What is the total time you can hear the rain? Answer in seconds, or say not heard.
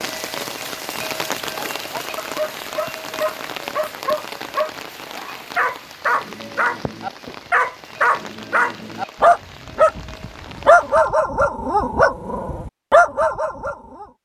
11 s.